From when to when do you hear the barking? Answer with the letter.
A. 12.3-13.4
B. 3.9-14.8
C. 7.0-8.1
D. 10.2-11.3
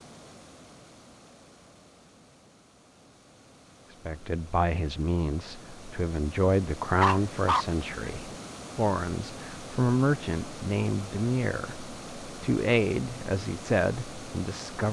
C.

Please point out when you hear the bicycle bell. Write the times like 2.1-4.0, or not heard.
not heard.